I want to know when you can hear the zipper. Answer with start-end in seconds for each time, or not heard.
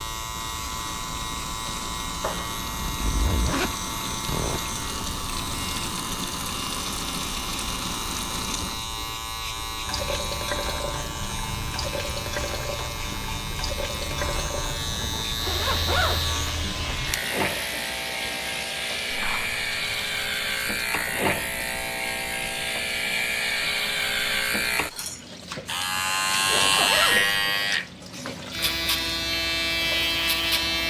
2.6-4.7, 15.1-17.0, 26.4-27.4.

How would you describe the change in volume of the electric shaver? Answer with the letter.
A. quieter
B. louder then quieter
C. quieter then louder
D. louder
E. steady
D.